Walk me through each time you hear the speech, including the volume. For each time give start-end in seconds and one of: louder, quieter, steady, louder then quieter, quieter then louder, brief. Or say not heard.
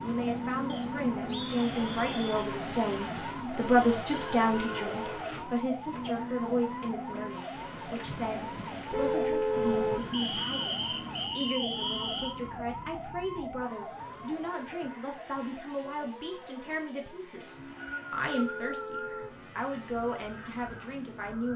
0.0-21.5 quieter.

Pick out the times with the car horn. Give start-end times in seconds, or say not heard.
4.1-5.2, 8.9-10.1, 18.2-19.4.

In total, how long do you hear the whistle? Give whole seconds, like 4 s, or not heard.
6 s.